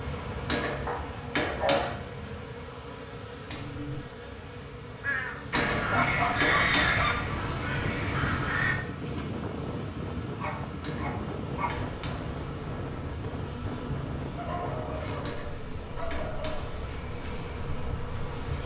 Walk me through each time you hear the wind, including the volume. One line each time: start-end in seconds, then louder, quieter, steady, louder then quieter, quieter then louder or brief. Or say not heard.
7.7-18.6 quieter.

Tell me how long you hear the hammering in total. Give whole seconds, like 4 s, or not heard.
6 s.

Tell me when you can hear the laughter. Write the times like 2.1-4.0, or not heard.
not heard.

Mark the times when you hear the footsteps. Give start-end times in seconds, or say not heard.
not heard.